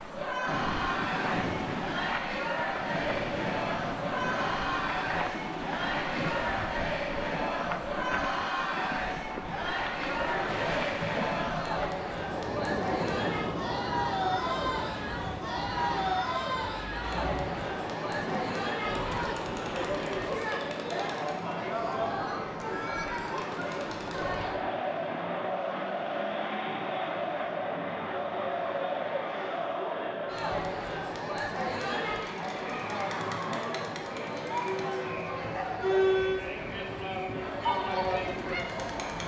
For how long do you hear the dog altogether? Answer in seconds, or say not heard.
not heard.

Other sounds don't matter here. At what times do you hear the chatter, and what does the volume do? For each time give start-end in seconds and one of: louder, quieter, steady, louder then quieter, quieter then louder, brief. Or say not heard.
0.1-39.2 steady.